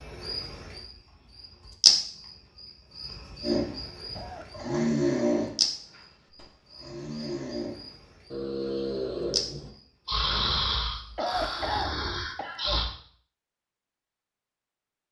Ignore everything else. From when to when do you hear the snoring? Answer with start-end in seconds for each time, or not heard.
3.4-12.9.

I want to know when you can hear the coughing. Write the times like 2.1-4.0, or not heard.
4.2-4.9, 11.2-12.8.